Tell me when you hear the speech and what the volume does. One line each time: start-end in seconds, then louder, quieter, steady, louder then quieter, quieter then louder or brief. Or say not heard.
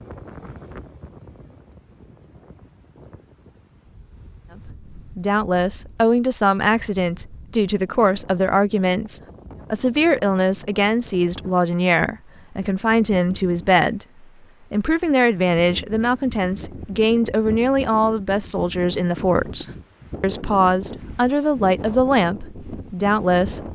4.7-23.7 steady.